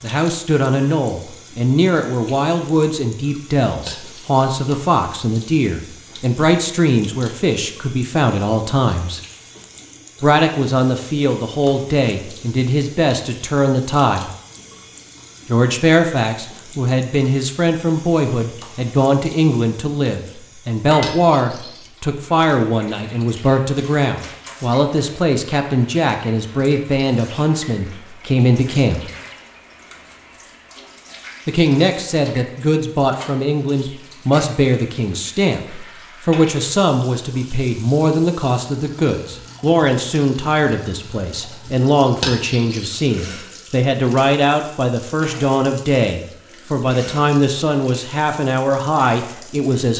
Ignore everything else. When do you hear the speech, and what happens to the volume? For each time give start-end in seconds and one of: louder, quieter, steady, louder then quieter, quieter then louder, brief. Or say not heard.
0.0-9.2 steady
10.2-14.3 steady
15.4-29.1 steady
31.4-49.9 steady.